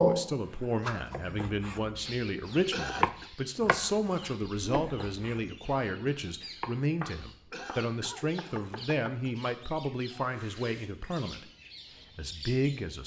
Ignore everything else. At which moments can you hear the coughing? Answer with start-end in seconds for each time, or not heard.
2.7-3.3, 7.5-9.3.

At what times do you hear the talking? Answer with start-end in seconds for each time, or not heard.
0.0-11.5, 12.2-13.0.